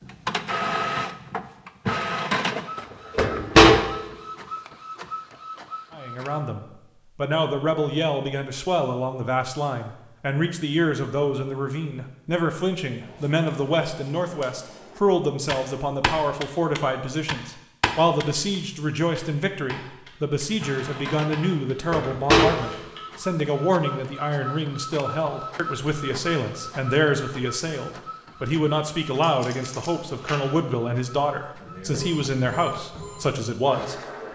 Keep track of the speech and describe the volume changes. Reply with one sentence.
The loudness of the speech stays about the same.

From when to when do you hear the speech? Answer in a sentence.
The speech can be heard from 5.9 to 34.0 s.